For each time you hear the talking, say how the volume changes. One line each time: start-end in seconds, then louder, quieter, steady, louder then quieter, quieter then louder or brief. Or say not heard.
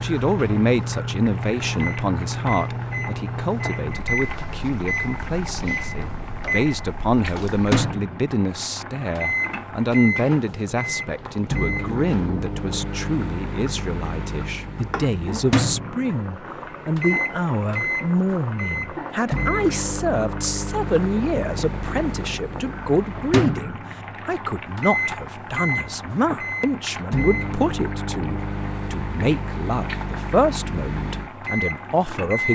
0.0-32.5 steady.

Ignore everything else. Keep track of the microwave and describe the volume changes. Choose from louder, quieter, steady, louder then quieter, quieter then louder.
steady.